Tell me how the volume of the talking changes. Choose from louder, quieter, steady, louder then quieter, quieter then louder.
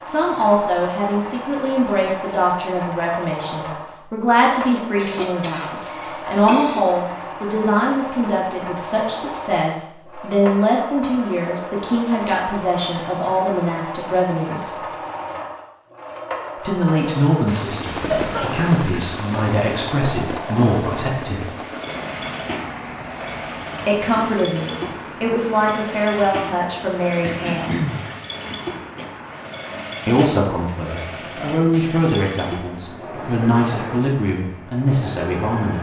steady.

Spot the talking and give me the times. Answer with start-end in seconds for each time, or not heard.
0.0-14.8, 16.6-21.5, 23.9-27.8, 30.1-35.7.